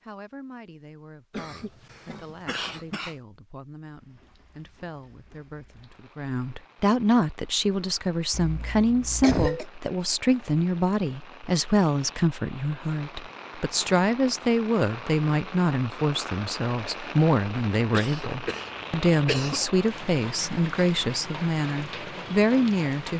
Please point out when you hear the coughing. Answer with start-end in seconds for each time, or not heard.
1.3-3.1, 8.3-9.7, 17.9-19.7.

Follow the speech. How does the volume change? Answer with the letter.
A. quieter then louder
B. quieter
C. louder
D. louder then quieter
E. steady
C.